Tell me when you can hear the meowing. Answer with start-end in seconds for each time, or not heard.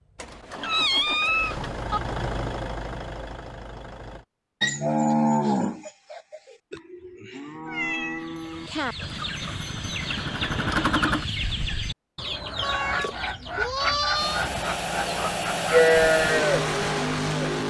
0.1-2.0, 7.7-8.9, 12.6-14.4.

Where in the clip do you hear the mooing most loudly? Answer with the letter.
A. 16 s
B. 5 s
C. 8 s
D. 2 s
A.